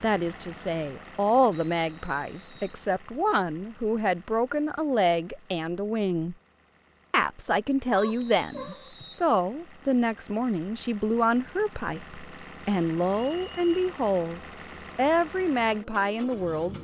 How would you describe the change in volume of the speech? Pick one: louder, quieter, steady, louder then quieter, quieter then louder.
steady.